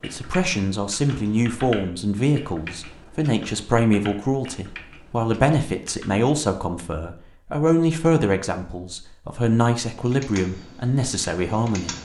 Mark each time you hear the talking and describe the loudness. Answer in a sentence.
The talking can be heard from 0.0 to 11.9 s, at a steady volume.